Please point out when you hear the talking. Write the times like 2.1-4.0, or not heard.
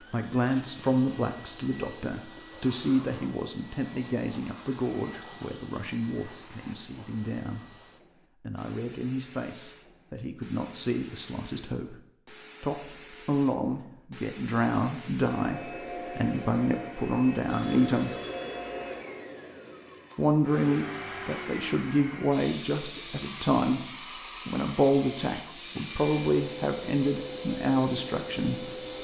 0.1-12.0, 12.6-18.1, 20.1-23.9, 24.4-29.0.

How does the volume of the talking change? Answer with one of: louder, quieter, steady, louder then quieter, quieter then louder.
quieter then louder.